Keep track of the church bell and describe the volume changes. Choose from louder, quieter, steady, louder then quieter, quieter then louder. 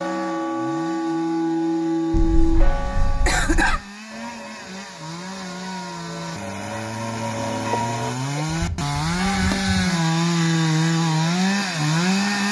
quieter then louder.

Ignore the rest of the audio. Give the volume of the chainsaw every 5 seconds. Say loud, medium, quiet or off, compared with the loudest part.
quiet, medium, loud.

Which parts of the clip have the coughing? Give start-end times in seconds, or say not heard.
2.1-3.8, 7.7-8.4.